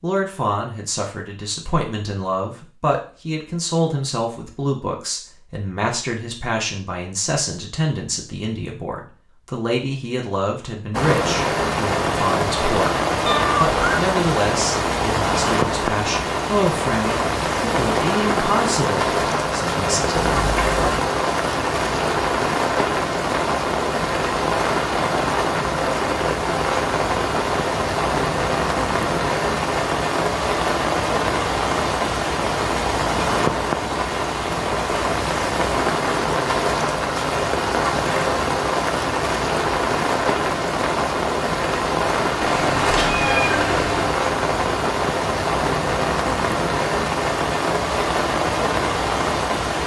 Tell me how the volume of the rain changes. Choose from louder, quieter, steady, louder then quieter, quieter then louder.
steady.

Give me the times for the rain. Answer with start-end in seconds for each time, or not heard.
10.9-49.8.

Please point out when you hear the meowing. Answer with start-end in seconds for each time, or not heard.
13.2-14.0, 20.1-21.1, 42.4-44.2.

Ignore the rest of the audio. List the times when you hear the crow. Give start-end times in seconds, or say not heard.
not heard.